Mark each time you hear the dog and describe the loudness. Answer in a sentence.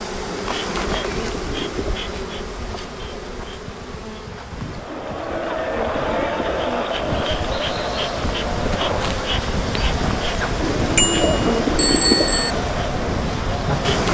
You can't hear the dog here.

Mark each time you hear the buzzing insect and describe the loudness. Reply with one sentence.
The buzzing insect can be heard from 0.0 to 14.0 s, getting quieter then louder.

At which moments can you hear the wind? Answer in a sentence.
You can hear the wind from 4.5 to 14.0 s.